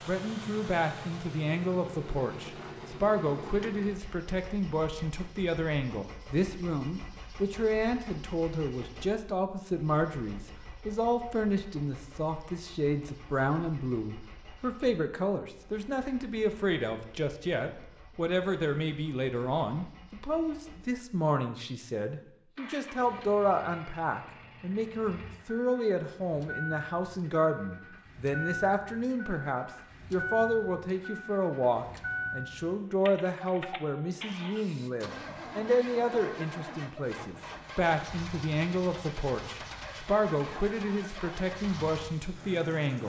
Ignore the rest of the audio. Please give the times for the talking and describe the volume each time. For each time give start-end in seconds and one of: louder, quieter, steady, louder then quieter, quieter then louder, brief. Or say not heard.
0.1-43.0 steady.